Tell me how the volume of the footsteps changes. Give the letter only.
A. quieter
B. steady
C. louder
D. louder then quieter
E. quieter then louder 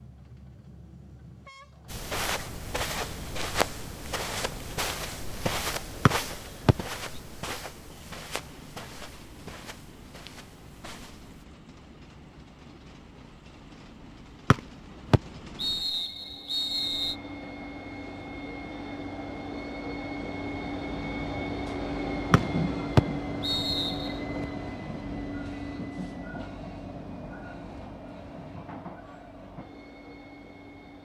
A.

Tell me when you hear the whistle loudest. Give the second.
23 s.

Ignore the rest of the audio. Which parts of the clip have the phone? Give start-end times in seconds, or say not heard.
not heard.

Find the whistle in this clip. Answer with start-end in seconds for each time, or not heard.
6.0-6.8, 14.5-17.1, 22.3-24.1.